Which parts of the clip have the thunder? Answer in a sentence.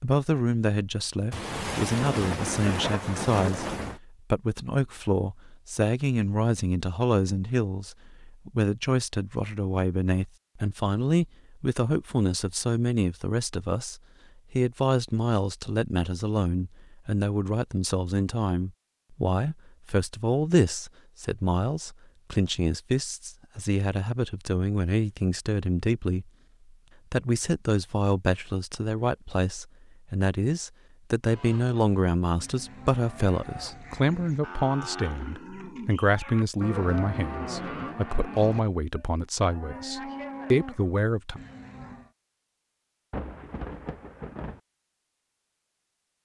You can hear the thunder from 1.3 to 4.0 s and from 43.1 to 44.6 s.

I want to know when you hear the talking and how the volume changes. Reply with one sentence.
The talking can be heard from 0.0 to 26.3 s, at a steady volume; and from 27.1 to 41.4 s, at a steady volume.